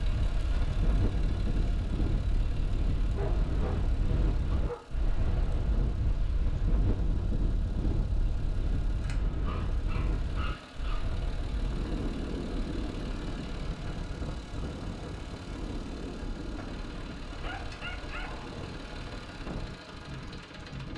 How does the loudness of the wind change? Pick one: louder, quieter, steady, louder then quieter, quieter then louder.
quieter.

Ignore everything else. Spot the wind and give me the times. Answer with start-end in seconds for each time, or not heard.
0.0-20.9.